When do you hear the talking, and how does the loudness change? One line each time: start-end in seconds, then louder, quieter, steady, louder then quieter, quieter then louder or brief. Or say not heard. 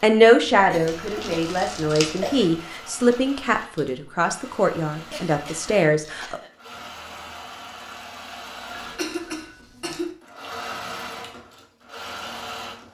0.0-6.4 steady.